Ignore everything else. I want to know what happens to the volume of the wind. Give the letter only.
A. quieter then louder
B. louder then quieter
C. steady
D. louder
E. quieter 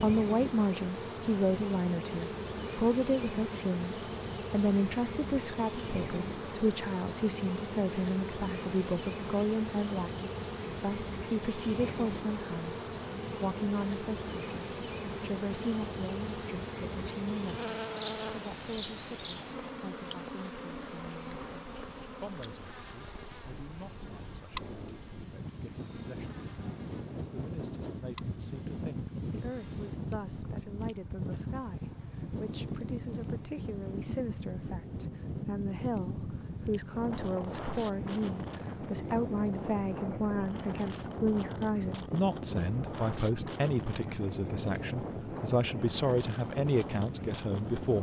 D.